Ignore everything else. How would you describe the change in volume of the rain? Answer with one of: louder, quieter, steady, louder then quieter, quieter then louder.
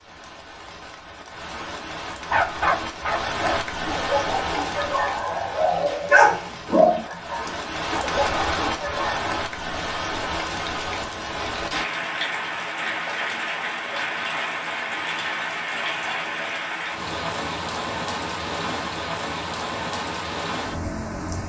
steady.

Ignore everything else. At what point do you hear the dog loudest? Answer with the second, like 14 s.
6 s.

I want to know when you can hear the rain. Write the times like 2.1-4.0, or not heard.
0.0-21.4.